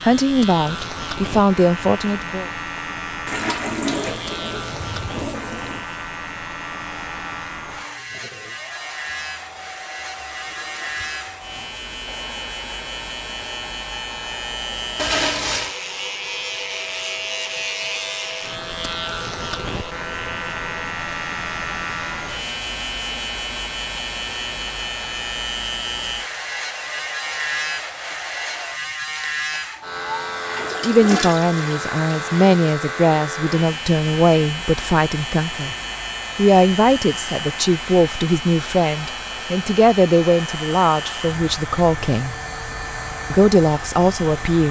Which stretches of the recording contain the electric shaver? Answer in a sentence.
The electric shaver can be heard from 0.0 to 44.6 s.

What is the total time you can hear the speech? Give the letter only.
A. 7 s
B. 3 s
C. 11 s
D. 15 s
D.